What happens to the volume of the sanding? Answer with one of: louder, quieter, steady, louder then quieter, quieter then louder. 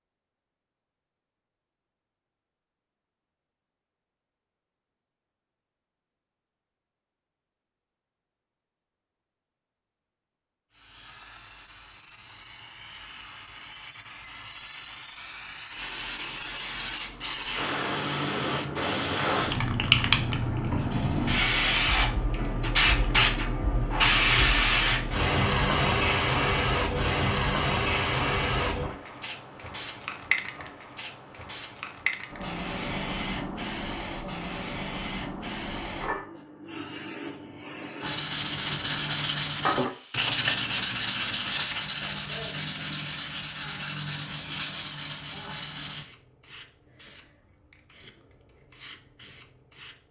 quieter.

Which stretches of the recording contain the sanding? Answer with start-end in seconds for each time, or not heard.
38.0-46.0.